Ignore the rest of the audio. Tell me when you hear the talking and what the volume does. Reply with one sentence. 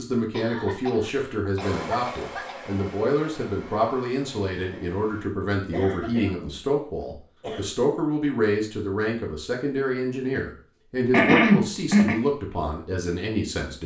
You can hear the talking from 0.0 to 13.8 s, at a steady volume.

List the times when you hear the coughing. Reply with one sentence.
You can hear the coughing from 0.3 to 2.6 s, from 5.7 to 7.7 s and from 11.1 to 12.2 s.